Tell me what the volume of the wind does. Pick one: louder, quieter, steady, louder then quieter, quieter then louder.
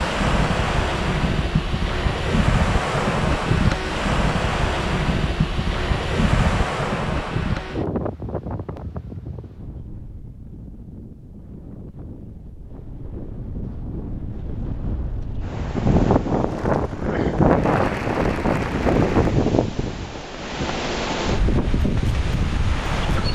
quieter then louder.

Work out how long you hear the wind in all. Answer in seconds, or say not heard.
23 s.